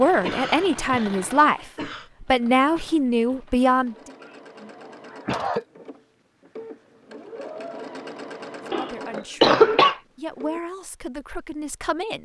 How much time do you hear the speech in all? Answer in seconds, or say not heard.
8 s.